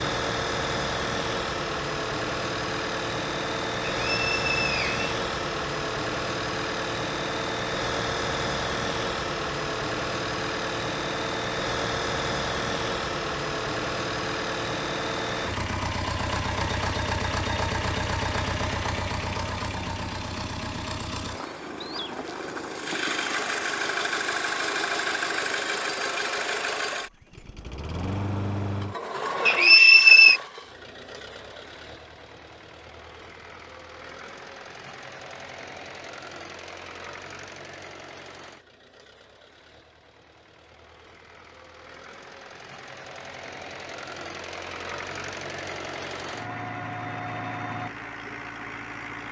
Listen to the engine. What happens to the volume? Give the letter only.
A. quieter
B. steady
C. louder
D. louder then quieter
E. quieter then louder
A.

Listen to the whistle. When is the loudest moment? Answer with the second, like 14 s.
30 s.